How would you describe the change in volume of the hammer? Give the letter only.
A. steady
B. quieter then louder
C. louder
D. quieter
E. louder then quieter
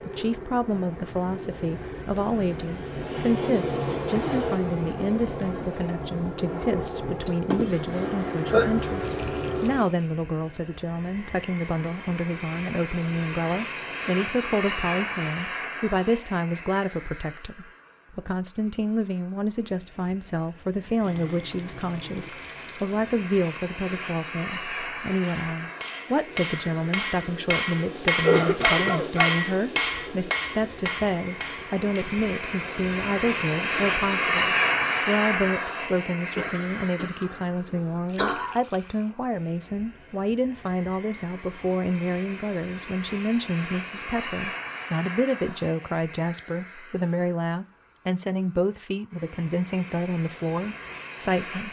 E.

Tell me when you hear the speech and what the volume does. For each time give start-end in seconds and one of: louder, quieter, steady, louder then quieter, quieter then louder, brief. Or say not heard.
0.1-51.6 steady.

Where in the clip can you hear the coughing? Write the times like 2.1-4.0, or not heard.
7.2-8.7, 28.2-29.4, 36.4-38.5.